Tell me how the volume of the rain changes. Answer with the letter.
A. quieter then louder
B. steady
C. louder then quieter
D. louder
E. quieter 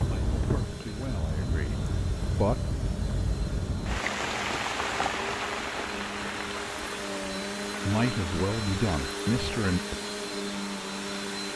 E.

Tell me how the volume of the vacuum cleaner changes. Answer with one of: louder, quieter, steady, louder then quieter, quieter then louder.
louder.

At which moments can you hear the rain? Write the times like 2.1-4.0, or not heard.
0.0-11.5.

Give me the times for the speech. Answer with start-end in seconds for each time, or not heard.
0.0-2.6, 7.8-9.8.